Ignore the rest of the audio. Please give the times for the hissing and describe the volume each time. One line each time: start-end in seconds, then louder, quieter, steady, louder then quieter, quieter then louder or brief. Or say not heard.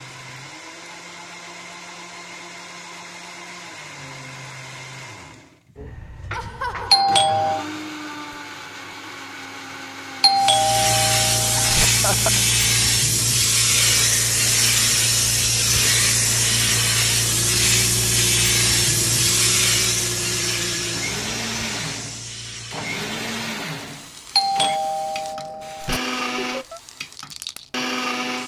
10.3-28.4 quieter.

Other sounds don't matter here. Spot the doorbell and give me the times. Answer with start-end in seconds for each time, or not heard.
6.9-7.7, 10.2-11.8, 24.4-26.0.